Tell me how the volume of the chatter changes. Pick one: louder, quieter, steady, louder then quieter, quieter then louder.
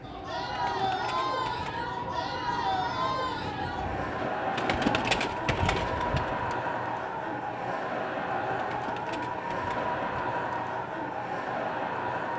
steady.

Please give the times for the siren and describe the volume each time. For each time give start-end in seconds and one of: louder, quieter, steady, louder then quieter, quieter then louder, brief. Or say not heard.
0.0-12.3 steady.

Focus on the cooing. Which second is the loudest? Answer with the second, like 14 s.
5 s.